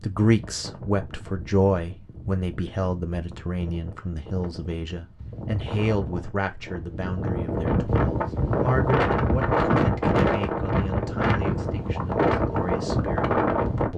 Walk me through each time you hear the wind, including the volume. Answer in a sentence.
You can hear the wind from 0.0 to 13.9 s, getting louder.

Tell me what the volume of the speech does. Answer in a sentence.
The loudness of the speech goes down.